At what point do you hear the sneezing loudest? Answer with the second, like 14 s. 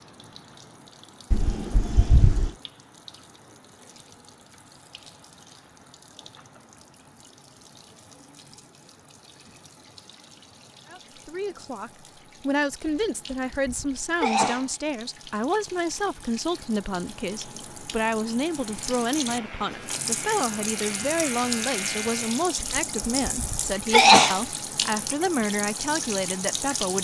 24 s.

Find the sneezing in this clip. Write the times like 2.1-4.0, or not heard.
1.3-2.5, 12.8-14.7, 22.6-24.4.